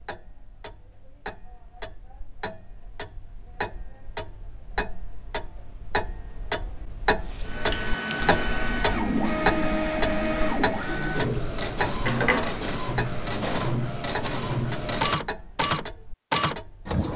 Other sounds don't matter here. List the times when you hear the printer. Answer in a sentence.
You can hear the printer from 7.2 to 17.1 s.